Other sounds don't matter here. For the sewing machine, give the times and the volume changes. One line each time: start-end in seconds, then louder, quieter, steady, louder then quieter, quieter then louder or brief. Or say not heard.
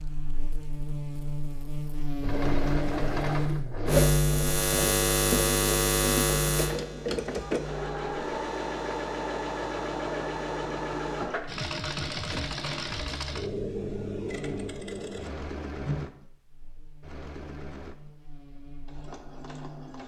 2.2-20.0 quieter.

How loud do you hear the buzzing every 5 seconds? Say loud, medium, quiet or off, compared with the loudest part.
loud, loud, quiet, quiet.